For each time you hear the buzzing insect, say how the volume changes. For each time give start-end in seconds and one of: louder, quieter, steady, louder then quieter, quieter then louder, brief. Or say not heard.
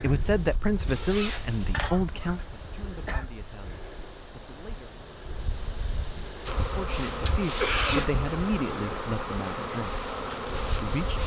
6.5-11.2 steady.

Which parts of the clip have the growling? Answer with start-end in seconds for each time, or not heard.
not heard.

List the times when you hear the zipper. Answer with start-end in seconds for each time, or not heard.
0.8-1.9, 7.5-8.1.